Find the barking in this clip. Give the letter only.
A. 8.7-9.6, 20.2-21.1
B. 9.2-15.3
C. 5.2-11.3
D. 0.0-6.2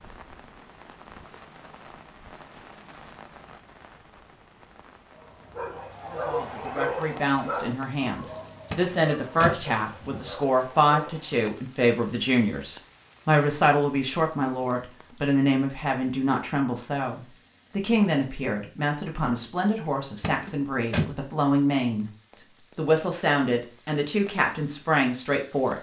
C.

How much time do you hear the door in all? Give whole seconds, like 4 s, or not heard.
2 s.